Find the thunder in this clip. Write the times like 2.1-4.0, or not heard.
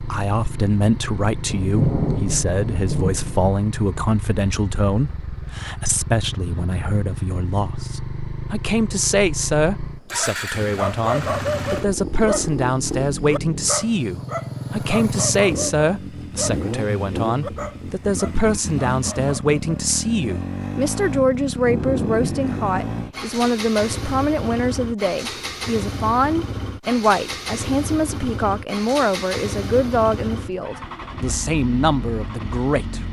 1.5-3.5, 21.6-23.1.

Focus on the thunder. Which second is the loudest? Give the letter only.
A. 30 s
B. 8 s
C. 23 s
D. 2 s
D.